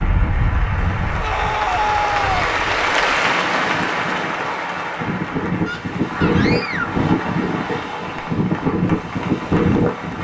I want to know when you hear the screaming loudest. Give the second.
2 s.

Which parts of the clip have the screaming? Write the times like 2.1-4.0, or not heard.
1.2-2.5, 5.7-7.0.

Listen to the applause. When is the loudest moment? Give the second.
3 s.